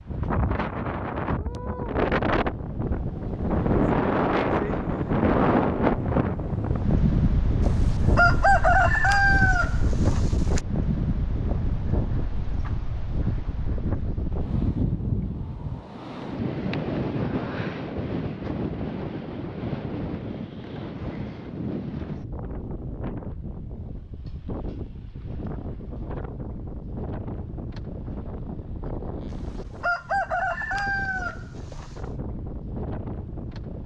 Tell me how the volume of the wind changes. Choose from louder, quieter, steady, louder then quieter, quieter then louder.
quieter.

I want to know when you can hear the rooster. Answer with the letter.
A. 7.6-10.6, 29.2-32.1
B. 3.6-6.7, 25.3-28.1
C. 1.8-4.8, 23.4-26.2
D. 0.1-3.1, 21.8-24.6
A.